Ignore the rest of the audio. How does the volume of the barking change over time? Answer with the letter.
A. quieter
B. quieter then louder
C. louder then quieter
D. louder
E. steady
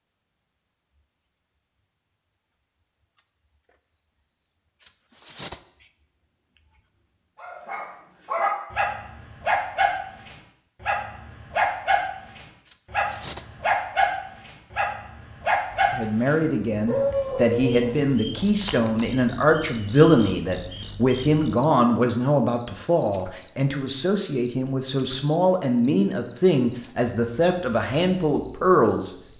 E.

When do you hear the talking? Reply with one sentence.
You can hear the talking from 15.9 to 29.1 s.